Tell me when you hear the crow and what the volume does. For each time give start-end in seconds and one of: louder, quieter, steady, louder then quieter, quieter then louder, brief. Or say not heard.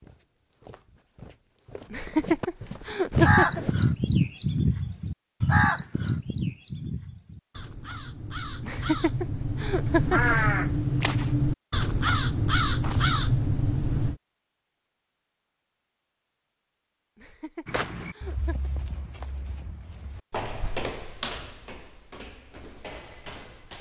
3.1-14.2 quieter then louder.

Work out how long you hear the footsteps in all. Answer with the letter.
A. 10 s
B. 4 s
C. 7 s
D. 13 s
A.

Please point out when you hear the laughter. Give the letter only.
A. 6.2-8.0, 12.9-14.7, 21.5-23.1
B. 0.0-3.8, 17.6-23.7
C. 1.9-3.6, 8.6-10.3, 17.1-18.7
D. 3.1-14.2
C.